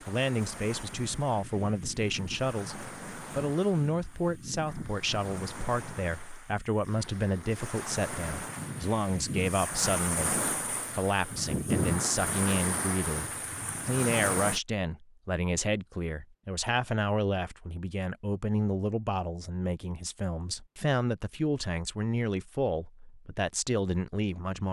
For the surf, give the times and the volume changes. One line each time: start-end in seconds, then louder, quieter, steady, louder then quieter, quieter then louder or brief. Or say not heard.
0.0-14.6 louder.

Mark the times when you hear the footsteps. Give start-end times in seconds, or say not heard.
not heard.